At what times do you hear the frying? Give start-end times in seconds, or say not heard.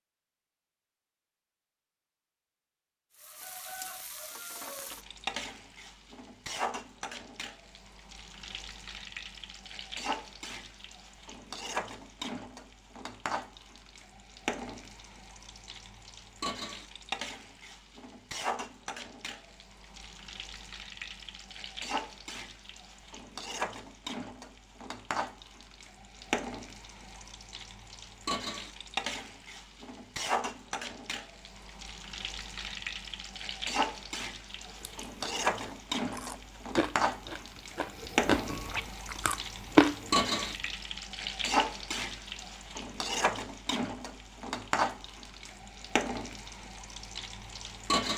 3.1-48.1.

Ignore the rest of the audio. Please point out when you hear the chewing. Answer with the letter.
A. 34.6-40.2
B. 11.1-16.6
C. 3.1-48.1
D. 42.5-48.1
A.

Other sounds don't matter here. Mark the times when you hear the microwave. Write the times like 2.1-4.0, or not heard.
not heard.